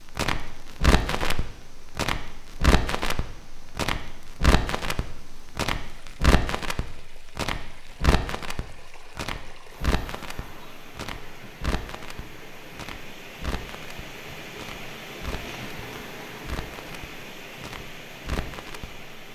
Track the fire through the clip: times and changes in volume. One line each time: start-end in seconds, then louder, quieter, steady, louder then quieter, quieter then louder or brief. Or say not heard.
0.0-19.1 quieter.